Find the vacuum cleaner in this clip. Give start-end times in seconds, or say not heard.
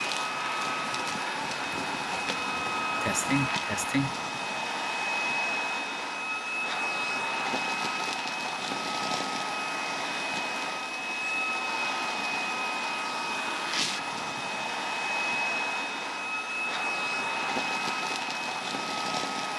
0.0-19.5.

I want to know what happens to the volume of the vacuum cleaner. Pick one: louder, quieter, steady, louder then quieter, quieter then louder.
steady.